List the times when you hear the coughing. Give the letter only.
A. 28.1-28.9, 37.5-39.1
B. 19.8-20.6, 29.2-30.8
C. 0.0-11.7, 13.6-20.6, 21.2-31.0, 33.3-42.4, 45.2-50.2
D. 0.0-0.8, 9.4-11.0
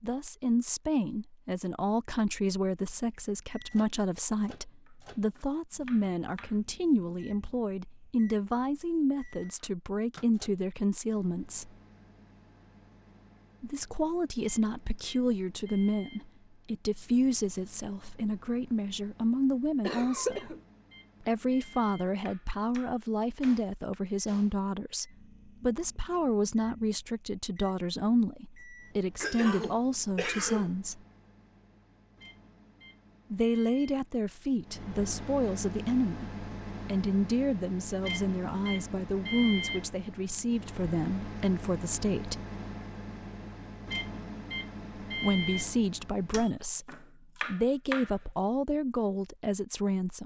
B.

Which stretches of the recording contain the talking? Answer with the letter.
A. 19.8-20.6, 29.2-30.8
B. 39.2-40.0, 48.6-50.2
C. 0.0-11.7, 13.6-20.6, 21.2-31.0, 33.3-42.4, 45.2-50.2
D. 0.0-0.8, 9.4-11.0
C.